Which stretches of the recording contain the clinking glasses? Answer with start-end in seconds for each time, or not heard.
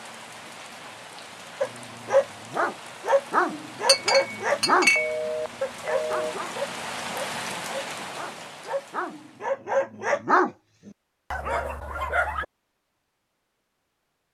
3.9-5.2.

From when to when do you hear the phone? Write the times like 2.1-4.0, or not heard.
5.0-6.3.